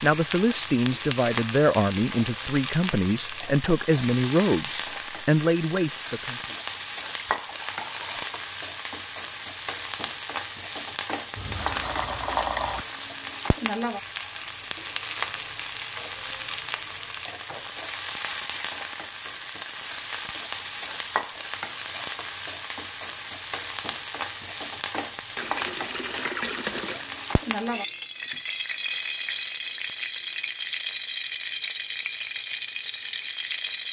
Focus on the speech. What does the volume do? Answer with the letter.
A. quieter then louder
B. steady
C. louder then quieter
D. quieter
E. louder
B.